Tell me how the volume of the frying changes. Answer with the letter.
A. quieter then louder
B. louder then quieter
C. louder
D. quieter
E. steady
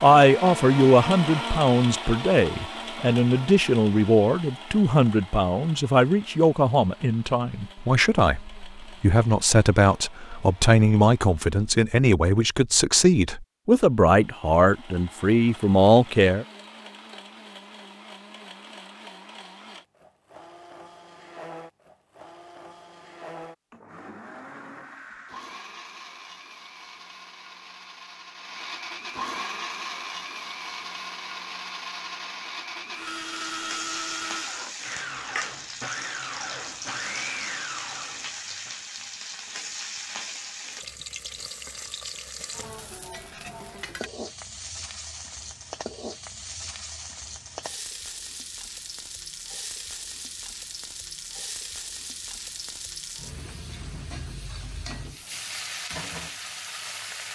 E.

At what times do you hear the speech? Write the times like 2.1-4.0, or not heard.
0.0-16.4.